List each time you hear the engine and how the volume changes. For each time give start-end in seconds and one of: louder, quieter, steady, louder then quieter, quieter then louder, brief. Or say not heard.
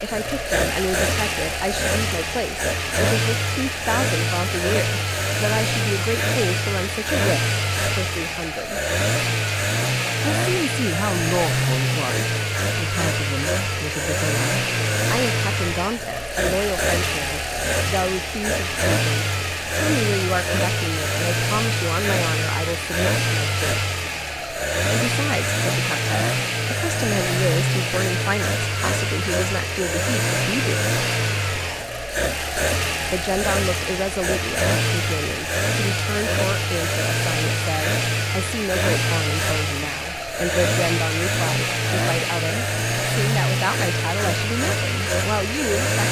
0.0-46.0 steady.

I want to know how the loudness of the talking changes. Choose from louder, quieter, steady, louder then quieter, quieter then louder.
steady.